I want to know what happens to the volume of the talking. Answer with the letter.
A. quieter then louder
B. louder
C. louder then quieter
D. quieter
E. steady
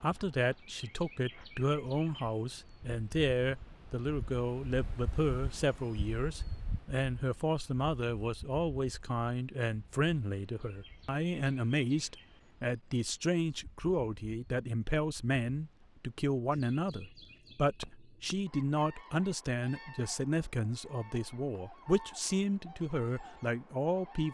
E.